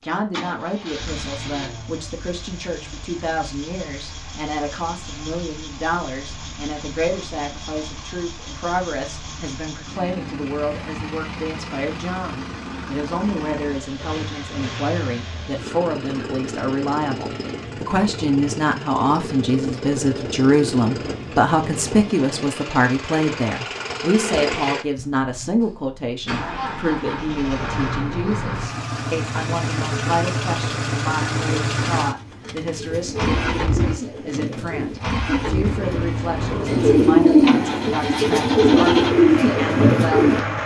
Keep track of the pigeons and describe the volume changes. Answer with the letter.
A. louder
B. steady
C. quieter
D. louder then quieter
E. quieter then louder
A.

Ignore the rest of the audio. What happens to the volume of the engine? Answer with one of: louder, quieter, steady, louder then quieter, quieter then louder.
louder.